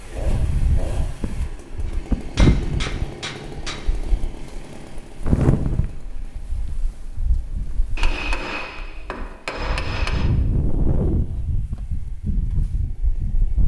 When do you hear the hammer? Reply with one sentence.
You can hear the hammer from 1.9 to 3.9 s and from 8.0 to 10.3 s.